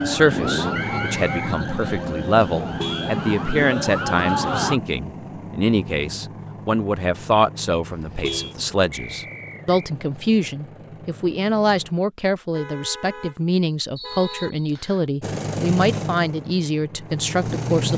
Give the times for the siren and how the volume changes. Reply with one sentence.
You can hear the siren from 0.0 to 4.8 s, getting quieter then louder.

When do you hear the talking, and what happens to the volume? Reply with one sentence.
The talking can be heard from 0.0 to 17.9 s, at a steady volume.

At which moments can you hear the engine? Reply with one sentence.
You can hear the engine from 0.0 to 11.9 s and from 15.2 to 17.9 s.